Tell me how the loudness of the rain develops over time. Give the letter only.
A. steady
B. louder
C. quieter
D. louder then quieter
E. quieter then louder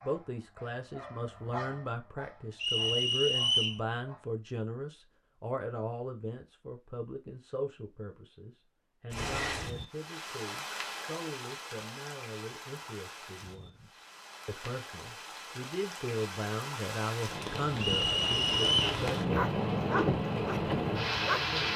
E.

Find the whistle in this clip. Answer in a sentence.
The whistle can be heard from 2.6 to 3.8 s and from 17.8 to 18.9 s.